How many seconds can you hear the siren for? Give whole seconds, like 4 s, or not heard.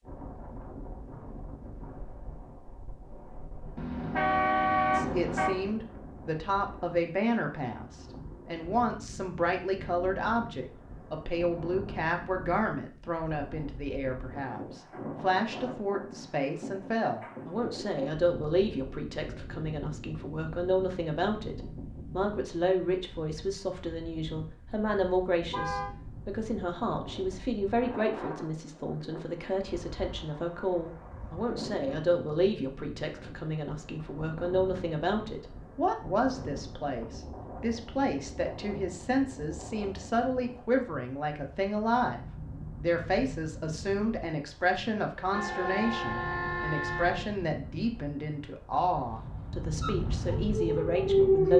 2 s.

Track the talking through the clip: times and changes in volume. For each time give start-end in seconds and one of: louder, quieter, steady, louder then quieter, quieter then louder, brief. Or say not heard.
4.9-51.5 steady.